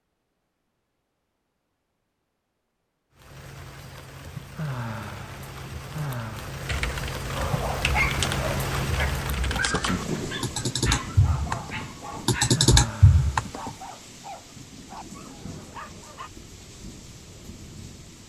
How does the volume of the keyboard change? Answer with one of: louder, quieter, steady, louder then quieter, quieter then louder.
louder.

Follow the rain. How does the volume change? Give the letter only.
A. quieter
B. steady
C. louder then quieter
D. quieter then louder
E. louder
C.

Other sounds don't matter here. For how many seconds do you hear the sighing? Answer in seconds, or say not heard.
3 s.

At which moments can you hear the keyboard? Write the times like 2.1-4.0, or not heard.
6.7-13.7.